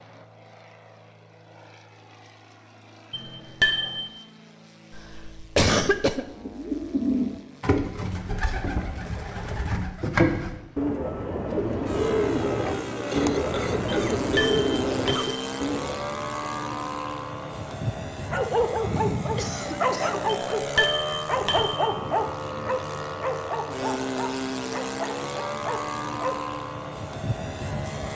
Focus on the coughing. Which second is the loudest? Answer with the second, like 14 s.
6 s.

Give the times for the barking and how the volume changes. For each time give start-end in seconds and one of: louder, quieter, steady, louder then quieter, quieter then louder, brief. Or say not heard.
18.3-26.4 quieter.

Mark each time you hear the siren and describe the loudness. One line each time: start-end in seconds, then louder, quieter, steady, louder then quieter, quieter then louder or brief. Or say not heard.
not heard.